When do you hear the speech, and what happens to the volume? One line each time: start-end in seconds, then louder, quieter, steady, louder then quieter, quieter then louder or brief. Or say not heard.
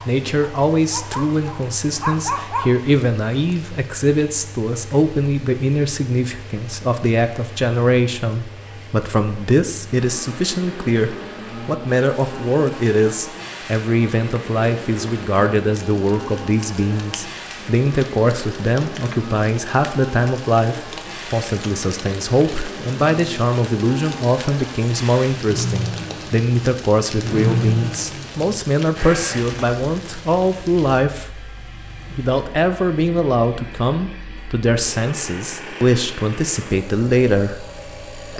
0.1-38.3 steady.